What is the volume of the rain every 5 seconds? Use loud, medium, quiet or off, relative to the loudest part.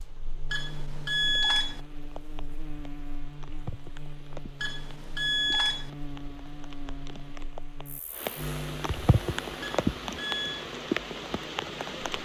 quiet, loud, loud.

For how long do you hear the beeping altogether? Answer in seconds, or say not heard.
4 s.